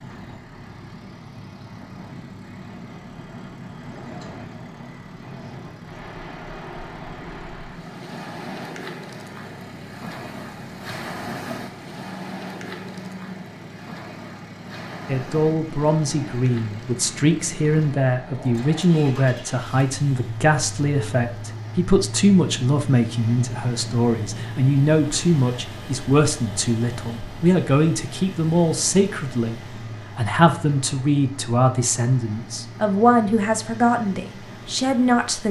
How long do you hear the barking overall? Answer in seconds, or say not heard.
not heard.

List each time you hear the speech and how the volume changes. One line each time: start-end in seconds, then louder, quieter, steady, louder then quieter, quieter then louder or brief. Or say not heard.
15.1-35.4 steady.